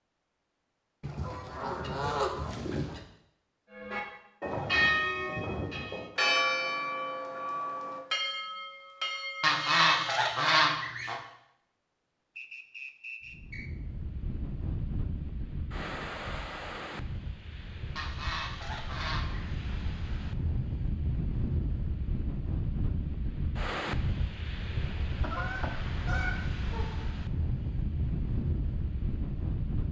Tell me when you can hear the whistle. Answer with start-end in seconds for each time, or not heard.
12.3-13.7.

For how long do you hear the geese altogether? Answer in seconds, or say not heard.
7 s.